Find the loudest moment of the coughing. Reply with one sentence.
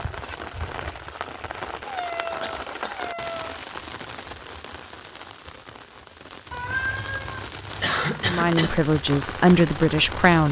The loudest moment of the coughing is at 8 seconds.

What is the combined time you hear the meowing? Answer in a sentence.
You can hear the meowing for 3 seconds altogether.